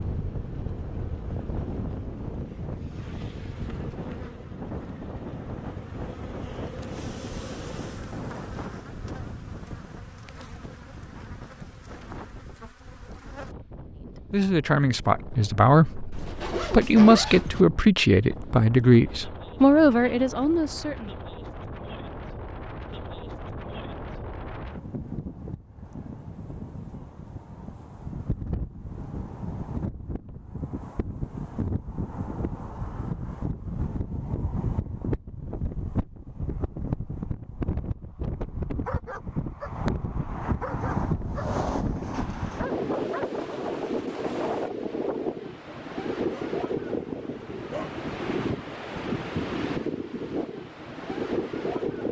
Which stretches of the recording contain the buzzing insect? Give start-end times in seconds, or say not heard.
0.0-13.6.